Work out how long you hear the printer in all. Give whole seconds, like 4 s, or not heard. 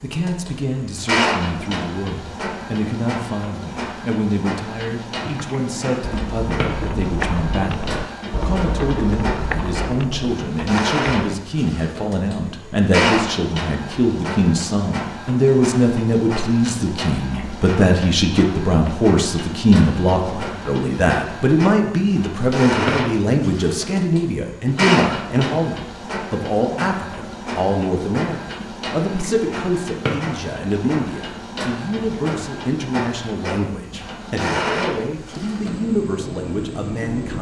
37 s.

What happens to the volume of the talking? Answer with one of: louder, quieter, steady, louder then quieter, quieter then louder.
louder then quieter.